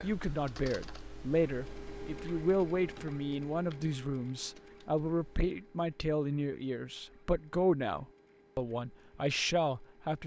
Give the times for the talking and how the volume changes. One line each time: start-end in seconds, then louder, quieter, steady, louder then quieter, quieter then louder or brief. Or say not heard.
0.0-10.2 steady.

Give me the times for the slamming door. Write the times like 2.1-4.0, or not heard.
not heard.